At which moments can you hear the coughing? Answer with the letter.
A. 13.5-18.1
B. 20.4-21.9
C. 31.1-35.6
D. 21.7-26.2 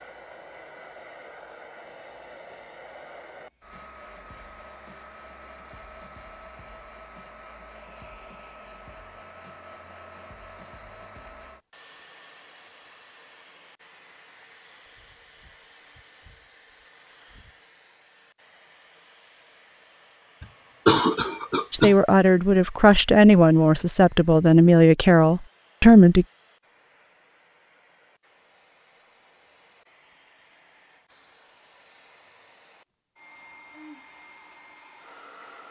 B.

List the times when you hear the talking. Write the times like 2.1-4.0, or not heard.
21.7-26.2.